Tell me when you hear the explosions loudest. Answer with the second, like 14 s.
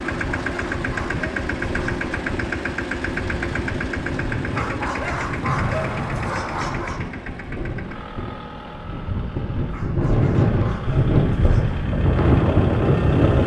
6 s.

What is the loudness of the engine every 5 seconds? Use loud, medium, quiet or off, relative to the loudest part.
loud, medium, medium.